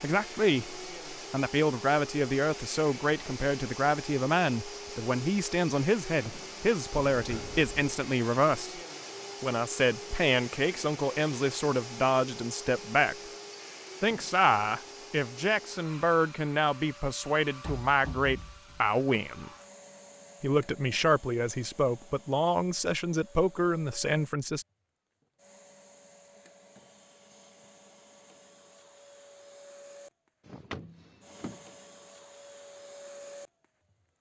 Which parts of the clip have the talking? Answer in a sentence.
The talking can be heard from 0.0 to 8.8 s, from 9.4 to 13.2 s, from 14.0 to 19.5 s and from 20.4 to 24.6 s.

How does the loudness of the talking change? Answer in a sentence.
The volume of the talking stays about the same.